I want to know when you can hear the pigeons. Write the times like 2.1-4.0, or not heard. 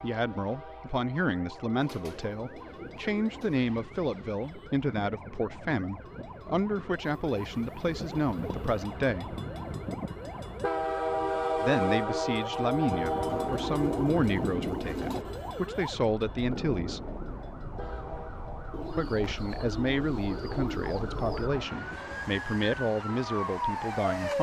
1.8-3.6, 7.2-8.7, 13.2-15.2, 18.7-21.5.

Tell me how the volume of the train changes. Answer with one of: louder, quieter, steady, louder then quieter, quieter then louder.
louder then quieter.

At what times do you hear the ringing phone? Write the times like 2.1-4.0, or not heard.
not heard.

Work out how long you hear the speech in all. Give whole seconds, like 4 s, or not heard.
20 s.